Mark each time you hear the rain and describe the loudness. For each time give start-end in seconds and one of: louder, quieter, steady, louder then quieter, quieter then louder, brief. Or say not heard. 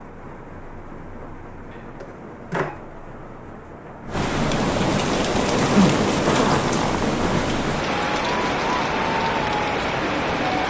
0.0-10.6 louder.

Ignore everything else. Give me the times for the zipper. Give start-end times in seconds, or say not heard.
1.7-2.8, 5.5-7.5.